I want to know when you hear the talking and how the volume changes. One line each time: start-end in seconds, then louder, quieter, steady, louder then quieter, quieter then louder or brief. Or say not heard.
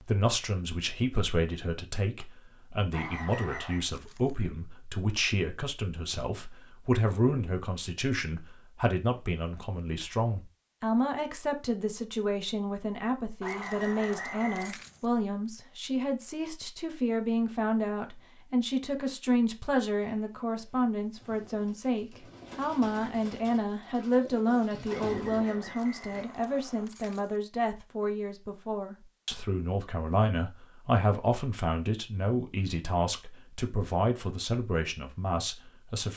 0.0-36.1 steady.